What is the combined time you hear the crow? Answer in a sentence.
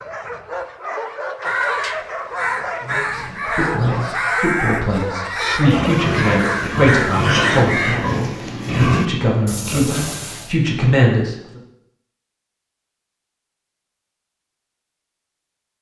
You can hear the crow for 7 seconds altogether.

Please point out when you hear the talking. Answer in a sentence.
The talking can be heard from 2.9 to 11.6 s.